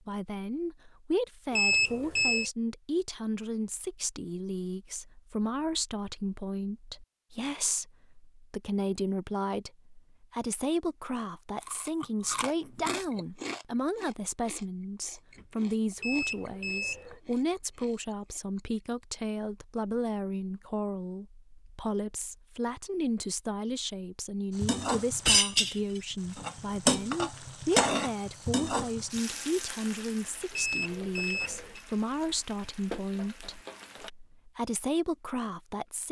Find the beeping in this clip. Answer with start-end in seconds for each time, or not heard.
1.5-2.5, 16.0-17.2, 30.5-31.9.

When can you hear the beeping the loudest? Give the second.
2 s.